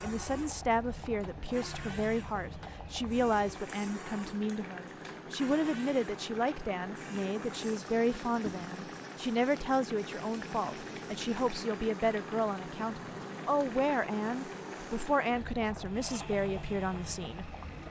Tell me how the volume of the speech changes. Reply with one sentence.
The loudness of the speech stays about the same.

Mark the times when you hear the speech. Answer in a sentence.
The speech can be heard from 0.0 to 17.6 s.